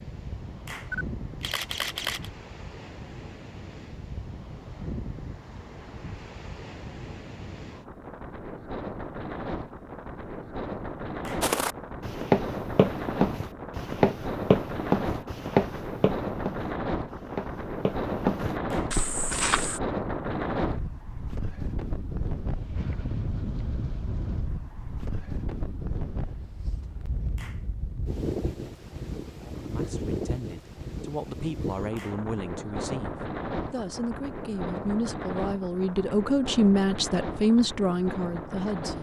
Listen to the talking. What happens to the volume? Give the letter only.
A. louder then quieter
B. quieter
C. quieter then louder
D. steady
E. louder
E.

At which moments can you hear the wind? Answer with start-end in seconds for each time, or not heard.
0.0-38.9.